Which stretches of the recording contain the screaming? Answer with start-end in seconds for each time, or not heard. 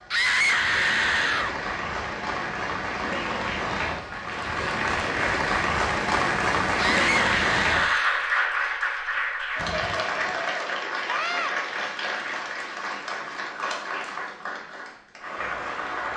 0.1-1.6, 6.8-8.2, 11.1-11.6.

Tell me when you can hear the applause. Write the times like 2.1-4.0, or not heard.
0.0-16.1.